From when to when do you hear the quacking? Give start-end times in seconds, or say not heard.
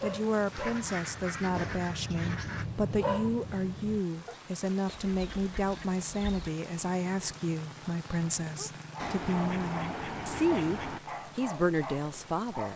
0.5-2.6, 4.8-6.5, 8.9-11.0.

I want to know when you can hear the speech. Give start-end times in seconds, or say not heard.
0.0-12.7.